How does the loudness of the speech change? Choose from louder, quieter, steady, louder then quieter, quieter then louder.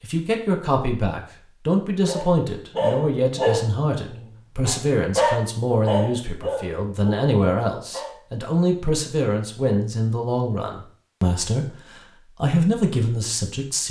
steady.